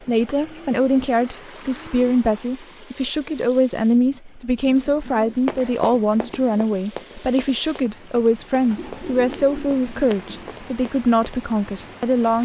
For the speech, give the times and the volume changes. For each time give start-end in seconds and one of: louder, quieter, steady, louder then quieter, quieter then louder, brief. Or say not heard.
0.1-12.4 steady.